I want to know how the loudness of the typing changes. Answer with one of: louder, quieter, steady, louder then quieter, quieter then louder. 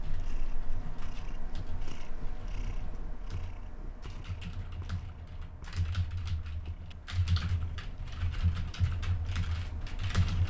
louder.